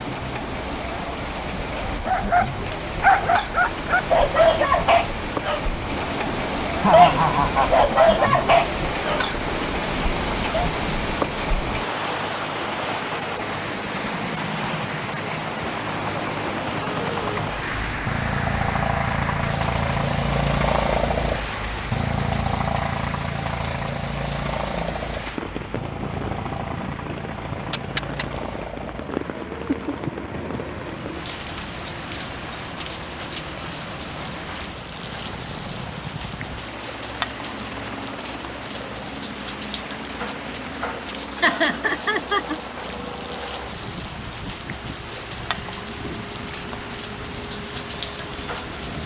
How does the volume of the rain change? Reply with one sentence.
The volume of the rain goes down.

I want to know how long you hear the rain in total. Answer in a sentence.
The rain can be heard for 49 seconds in total.